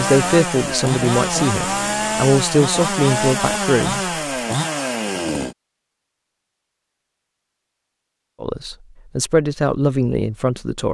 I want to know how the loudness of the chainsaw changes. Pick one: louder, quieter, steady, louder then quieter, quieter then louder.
steady.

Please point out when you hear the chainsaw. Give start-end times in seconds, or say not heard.
0.0-5.5.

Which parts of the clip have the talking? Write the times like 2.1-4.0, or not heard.
0.0-4.0, 8.4-10.9.